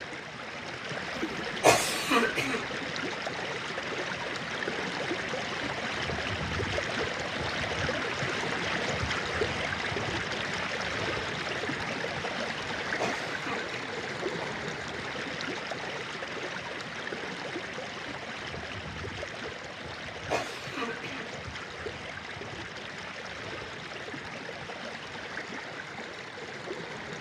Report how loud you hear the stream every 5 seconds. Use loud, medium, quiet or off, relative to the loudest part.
loud, loud, loud, medium, medium, medium.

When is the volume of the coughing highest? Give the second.
2 s.